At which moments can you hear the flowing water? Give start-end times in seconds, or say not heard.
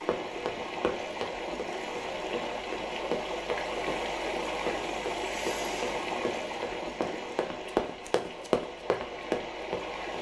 0.0-10.1.